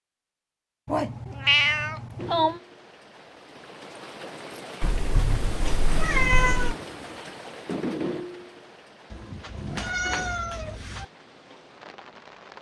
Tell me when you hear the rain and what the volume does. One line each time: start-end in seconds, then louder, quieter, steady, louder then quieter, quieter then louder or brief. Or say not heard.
2.1-12.5 louder then quieter.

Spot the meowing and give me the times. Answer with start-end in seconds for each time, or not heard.
0.8-2.6, 4.8-6.8, 9.1-11.1.